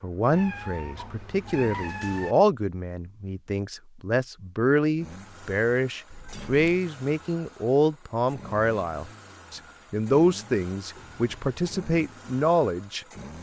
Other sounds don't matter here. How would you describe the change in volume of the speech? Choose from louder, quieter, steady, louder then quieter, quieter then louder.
steady.